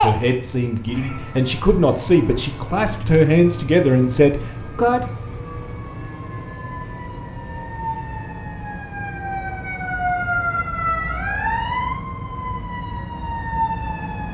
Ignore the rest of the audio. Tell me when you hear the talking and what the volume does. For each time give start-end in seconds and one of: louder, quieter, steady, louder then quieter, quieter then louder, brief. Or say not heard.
0.0-5.1 louder.